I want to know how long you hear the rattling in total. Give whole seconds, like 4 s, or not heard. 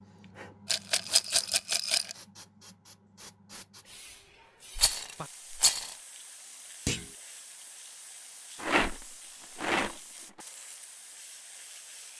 4 s.